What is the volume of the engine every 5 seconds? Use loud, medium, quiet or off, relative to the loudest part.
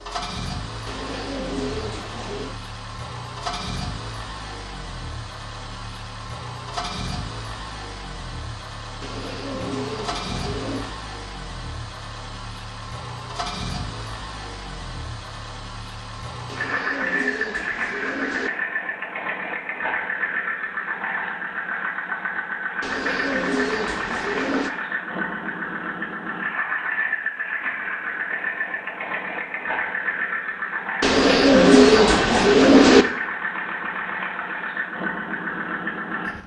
medium, medium, medium, loud, loud, loud, loud, loud.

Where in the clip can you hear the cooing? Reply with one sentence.
The cooing can be heard from 0.8 to 2.5 s, from 9.0 to 11.0 s, from 16.4 to 18.5 s, from 22.8 to 24.7 s and from 31.0 to 33.0 s.